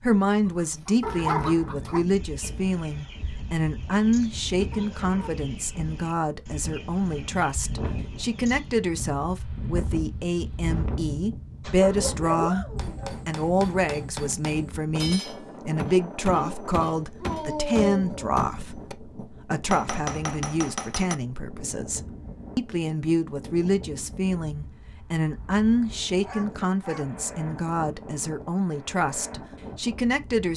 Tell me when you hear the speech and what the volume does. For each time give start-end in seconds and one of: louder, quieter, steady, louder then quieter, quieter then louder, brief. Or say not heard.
0.0-30.5 steady.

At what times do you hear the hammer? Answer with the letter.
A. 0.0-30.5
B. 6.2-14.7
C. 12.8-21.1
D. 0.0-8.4
C.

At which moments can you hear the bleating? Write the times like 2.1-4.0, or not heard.
not heard.